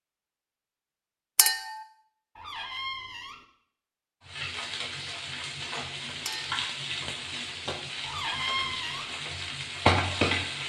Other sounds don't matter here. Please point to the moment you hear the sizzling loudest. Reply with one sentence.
The loudest moment of the sizzling is at 10 seconds.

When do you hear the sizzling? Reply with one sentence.
You can hear the sizzling from 4.2 to 10.6 s.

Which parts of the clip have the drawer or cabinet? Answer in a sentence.
The drawer or cabinet can be heard from 2.4 to 3.5 s and from 8.0 to 9.1 s.